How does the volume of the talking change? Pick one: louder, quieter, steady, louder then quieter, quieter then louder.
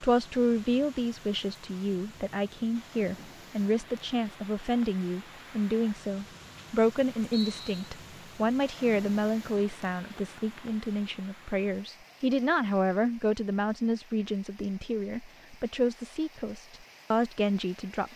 steady.